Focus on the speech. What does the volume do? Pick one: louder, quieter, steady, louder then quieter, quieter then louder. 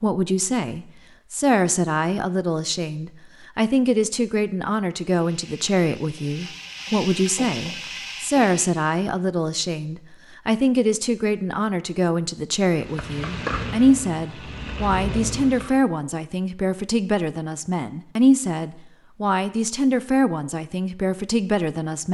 steady.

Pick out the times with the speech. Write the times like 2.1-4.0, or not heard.
0.0-22.1.